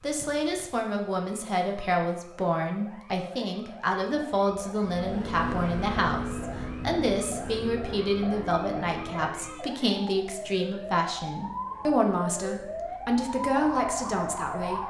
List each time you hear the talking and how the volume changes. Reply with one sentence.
The talking can be heard from 0.0 to 14.8 s, at a steady volume.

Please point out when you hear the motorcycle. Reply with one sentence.
You can hear the motorcycle from 4.8 to 9.8 s.